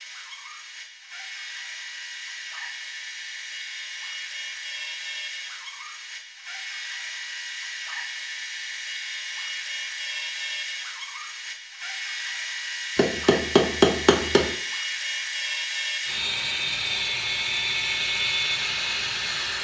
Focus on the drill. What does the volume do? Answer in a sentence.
The volume of the drill goes up.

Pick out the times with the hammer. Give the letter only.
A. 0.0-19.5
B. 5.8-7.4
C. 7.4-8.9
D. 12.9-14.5
D.